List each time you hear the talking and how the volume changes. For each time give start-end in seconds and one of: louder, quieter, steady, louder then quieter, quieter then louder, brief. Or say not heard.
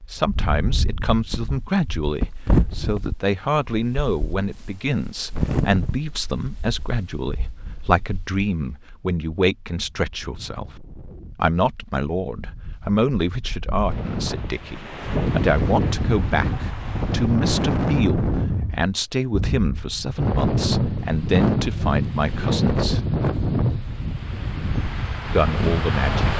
0.1-23.0 steady
25.2-26.3 brief.